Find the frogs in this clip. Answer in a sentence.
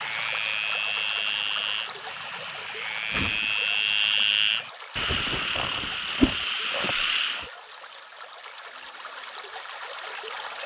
You can hear the frogs from 0.0 to 7.5 s.